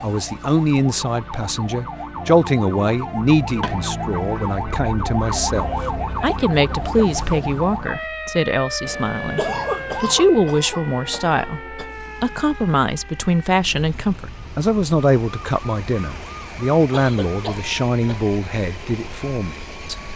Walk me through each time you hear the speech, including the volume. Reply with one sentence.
You can hear the speech from 0.0 to 20.0 s, at a steady volume.